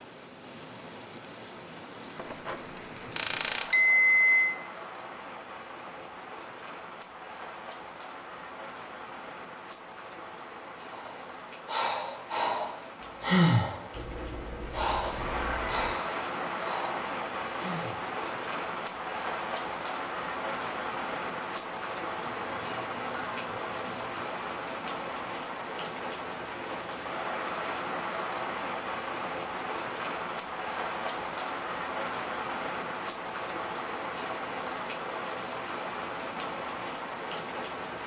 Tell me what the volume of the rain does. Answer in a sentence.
The loudness of the rain goes up.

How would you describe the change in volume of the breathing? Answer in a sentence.
The volume of the breathing goes up, then down.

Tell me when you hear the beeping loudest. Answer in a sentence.
The loudest moment of the beeping is at 4 seconds.